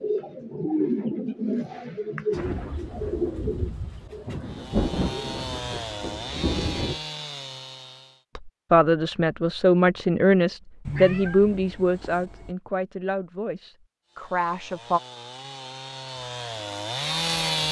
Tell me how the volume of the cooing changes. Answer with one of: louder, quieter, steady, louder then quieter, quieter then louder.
quieter.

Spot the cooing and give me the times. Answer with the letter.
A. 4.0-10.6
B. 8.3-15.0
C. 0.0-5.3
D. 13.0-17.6
C.